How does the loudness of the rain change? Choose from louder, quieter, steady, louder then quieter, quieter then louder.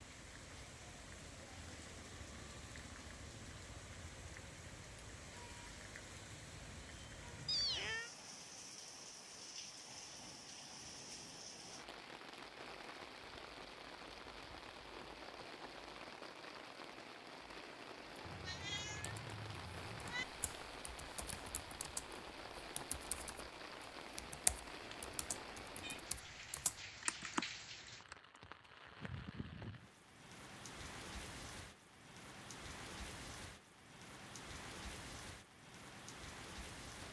steady.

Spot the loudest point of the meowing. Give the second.
8 s.